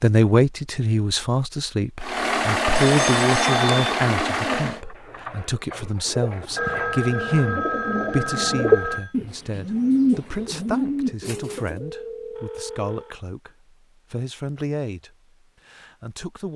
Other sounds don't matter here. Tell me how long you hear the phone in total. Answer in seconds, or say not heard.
5 s.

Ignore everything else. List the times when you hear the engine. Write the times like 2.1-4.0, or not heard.
2.0-4.8.